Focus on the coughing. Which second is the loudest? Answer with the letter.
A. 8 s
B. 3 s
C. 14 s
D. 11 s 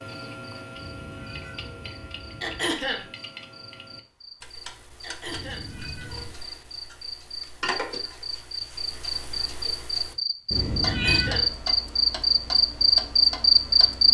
B.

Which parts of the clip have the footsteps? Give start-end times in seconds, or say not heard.
not heard.